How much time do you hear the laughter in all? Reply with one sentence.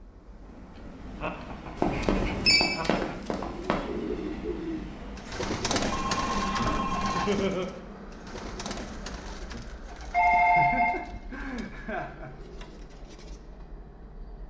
You can hear the laughter for 4 seconds altogether.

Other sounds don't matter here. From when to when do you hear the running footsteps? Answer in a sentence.
You can hear the running footsteps from 1.8 to 4.0 s.